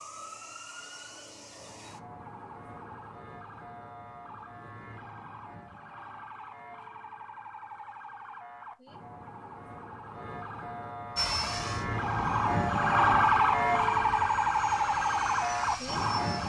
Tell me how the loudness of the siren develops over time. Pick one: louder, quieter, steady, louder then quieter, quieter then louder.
louder.